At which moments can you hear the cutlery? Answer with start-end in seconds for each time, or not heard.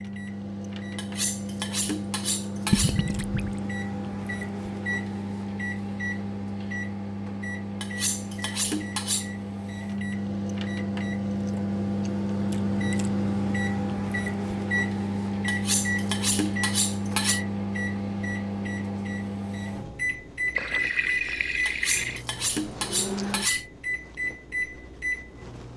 0.9-3.0, 7.8-9.3, 15.4-17.4, 21.6-23.6.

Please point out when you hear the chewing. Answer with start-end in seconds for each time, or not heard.
not heard.